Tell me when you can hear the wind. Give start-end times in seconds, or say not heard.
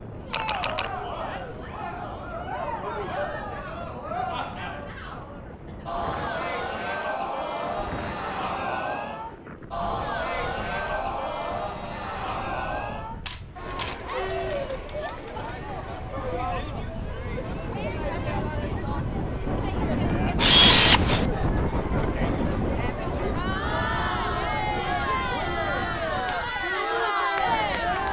0.0-28.0.